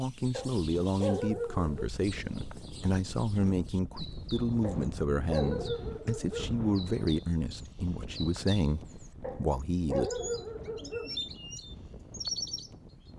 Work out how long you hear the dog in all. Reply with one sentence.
The dog can be heard for 6 seconds in total.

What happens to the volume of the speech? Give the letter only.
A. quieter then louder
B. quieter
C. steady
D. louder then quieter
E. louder
C.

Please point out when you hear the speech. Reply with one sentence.
You can hear the speech from 0.0 to 10.1 s.